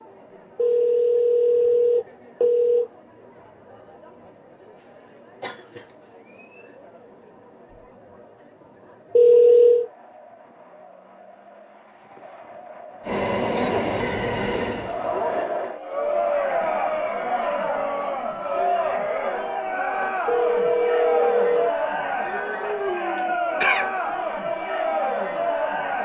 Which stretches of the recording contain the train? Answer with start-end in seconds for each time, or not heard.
13.0-15.4.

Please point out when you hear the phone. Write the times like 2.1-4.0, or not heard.
0.6-2.9, 9.2-9.8, 20.2-21.7.